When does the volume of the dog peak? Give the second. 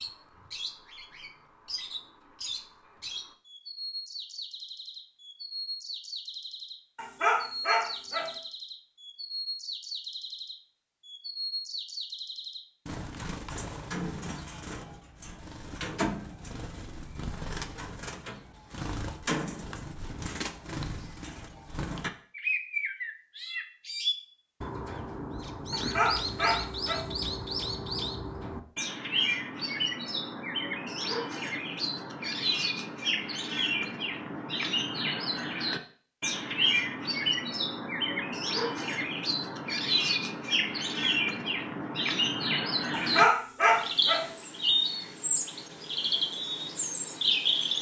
43 s.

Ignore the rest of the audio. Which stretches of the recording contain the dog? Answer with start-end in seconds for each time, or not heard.
7.0-8.3, 25.7-27.1, 42.9-44.2.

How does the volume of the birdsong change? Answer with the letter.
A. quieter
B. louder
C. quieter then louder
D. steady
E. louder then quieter
B.